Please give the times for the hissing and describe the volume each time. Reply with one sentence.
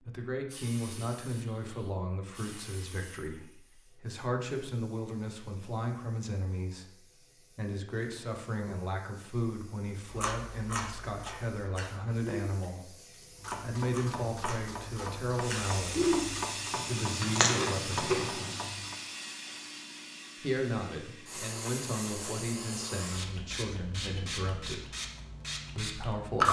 The hissing can be heard from 0.0 to 26.4 s, getting quieter then louder.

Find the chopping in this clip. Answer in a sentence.
The chopping can be heard from 13.3 to 18.9 s.